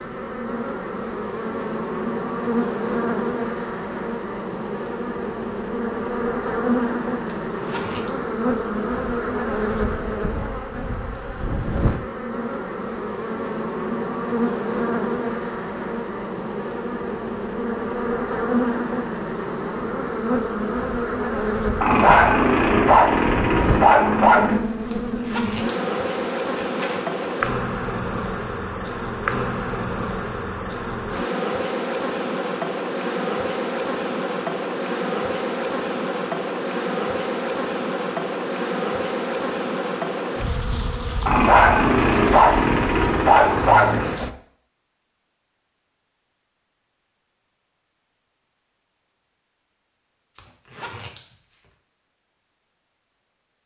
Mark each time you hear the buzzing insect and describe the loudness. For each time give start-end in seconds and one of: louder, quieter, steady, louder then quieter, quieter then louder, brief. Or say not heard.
0.0-44.3 steady.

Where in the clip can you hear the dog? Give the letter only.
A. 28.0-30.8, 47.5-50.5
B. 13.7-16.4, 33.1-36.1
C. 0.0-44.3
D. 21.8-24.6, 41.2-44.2
D.